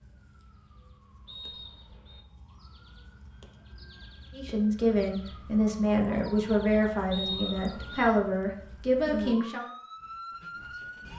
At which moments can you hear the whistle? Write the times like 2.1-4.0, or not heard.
1.2-2.2, 7.1-8.1.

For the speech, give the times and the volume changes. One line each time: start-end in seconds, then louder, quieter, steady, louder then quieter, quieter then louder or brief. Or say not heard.
4.3-9.7 steady.